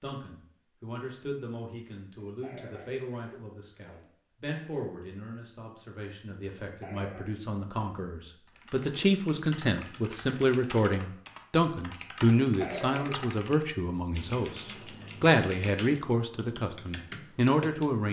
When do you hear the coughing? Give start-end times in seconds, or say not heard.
2.2-4.1, 6.6-7.2, 12.4-13.2.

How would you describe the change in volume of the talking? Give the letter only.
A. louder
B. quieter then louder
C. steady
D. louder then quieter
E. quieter
A.